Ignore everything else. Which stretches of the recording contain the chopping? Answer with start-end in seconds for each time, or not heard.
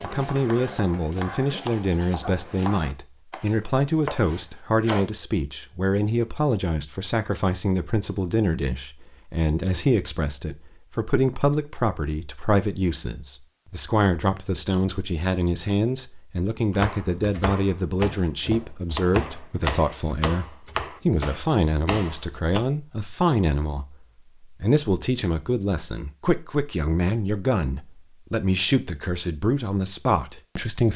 0.0-5.1, 16.7-22.6.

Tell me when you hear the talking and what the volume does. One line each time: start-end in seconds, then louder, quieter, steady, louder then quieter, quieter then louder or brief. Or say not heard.
0.0-30.9 steady.